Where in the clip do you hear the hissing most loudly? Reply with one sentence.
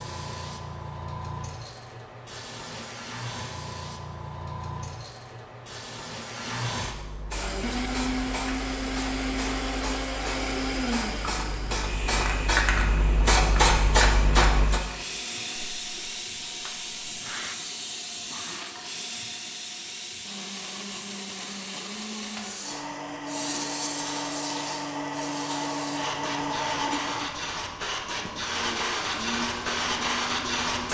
The volume of the hissing peaks at 14 seconds.